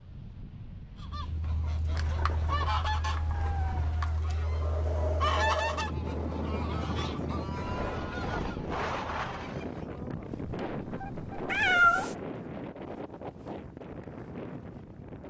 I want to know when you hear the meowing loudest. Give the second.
12 s.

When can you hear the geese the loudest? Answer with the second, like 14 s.
5 s.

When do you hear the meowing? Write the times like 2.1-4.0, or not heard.
1.9-4.3, 11.4-12.2.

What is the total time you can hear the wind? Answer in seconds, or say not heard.
15 s.